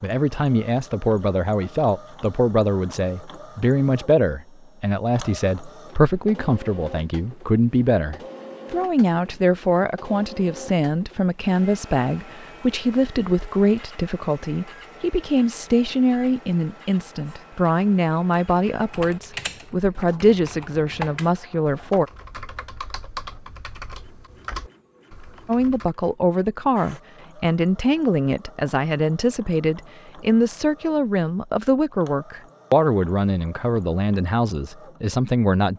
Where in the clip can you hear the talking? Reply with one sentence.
You can hear the talking from 0.0 to 22.1 s and from 25.4 to 35.7 s.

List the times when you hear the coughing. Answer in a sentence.
You can't hear the coughing here.